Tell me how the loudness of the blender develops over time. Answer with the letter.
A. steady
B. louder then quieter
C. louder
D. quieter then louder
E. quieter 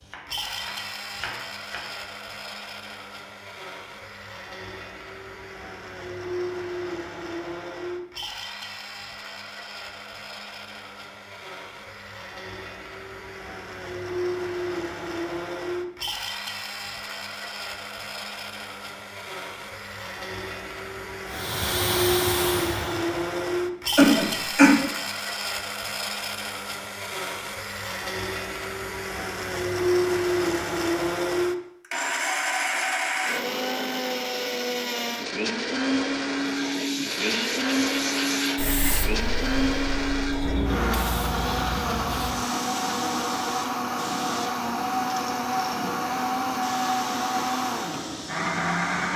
C.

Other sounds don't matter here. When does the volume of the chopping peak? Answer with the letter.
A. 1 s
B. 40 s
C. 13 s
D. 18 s
A.